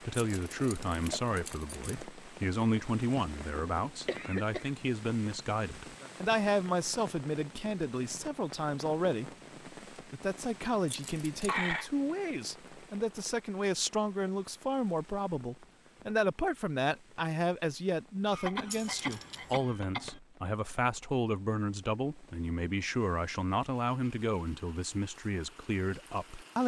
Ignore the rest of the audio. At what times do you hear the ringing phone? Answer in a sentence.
The ringing phone can't be heard in this clip.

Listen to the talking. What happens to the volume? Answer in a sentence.
The volume of the talking stays about the same.